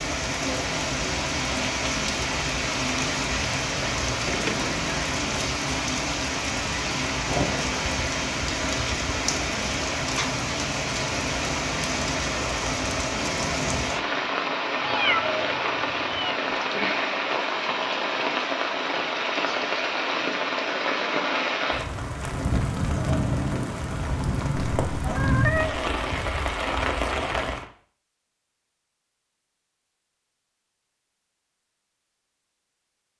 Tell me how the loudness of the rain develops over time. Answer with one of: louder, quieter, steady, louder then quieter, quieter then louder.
steady.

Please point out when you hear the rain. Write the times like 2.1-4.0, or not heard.
0.0-27.6.